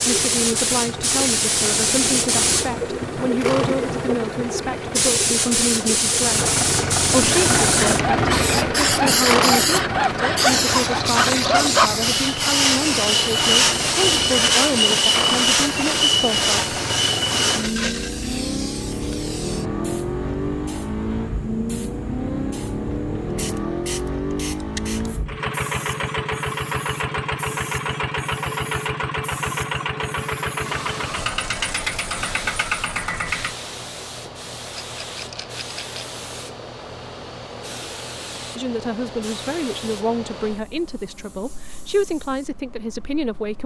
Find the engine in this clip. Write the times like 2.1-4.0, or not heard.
0.0-33.5.